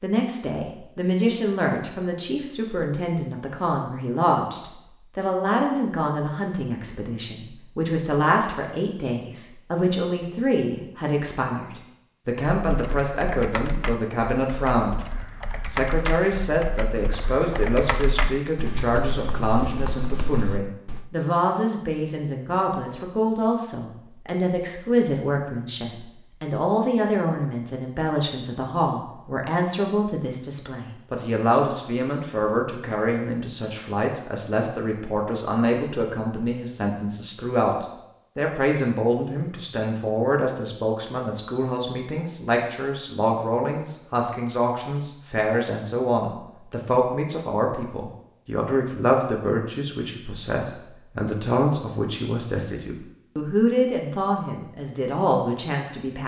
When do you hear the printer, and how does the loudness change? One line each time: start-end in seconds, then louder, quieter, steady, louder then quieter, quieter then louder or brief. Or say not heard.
not heard.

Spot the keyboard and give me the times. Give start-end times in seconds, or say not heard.
12.6-21.1.